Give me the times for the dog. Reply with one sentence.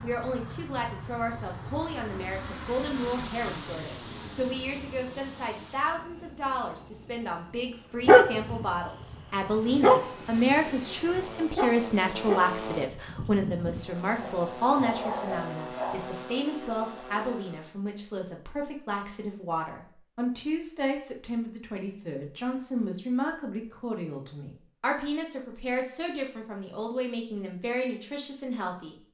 The dog can be heard from 8.1 to 16.1 s.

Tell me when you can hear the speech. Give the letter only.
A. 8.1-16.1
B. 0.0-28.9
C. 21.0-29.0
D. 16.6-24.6
B.